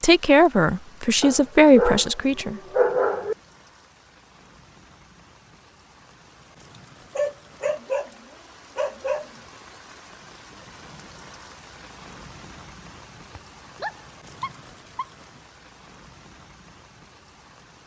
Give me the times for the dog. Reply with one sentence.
You can hear the dog from 1.2 to 3.4 s, from 7.2 to 9.3 s and from 13.3 to 15.1 s.